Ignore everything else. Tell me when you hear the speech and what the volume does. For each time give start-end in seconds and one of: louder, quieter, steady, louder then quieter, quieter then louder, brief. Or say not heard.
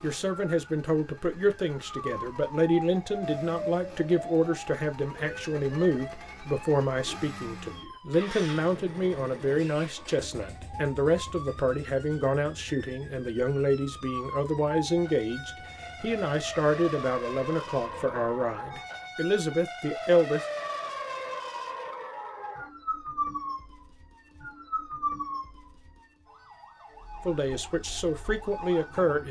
0.0-20.4 steady
27.2-29.2 brief.